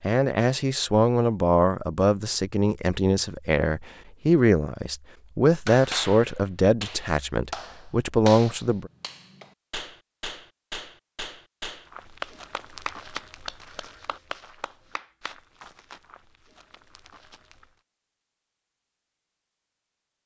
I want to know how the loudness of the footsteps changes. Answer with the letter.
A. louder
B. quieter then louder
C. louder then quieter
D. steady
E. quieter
E.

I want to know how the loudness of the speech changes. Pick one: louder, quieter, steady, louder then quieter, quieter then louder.
steady.